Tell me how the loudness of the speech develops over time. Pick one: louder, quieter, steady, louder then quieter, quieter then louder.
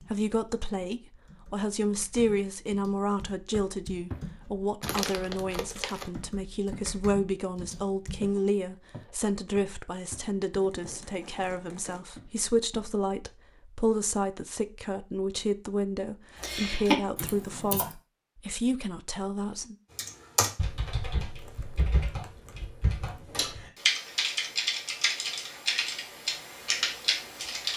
steady.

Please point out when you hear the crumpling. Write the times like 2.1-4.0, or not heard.
4.8-6.1, 10.5-12.0, 21.4-23.2.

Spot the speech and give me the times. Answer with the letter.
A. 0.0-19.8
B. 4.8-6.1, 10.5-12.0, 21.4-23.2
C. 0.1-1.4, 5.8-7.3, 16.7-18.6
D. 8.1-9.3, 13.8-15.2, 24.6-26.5
A.